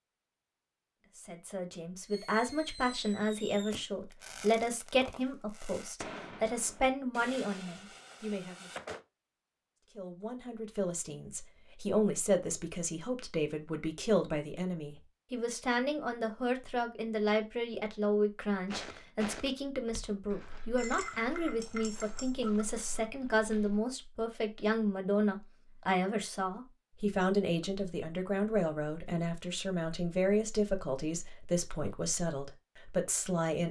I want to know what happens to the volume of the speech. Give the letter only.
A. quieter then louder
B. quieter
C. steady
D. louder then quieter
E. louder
C.